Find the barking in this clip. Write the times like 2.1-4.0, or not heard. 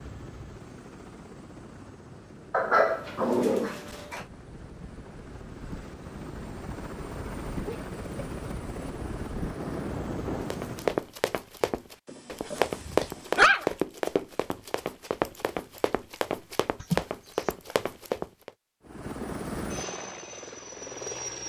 2.5-4.2, 12.1-13.7.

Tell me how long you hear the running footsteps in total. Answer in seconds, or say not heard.
8 s.